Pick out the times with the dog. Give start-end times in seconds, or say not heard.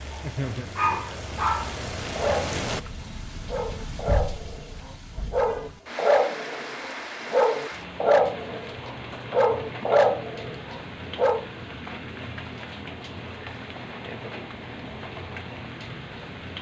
0.1-11.4.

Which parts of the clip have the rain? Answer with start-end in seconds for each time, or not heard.
0.0-16.5.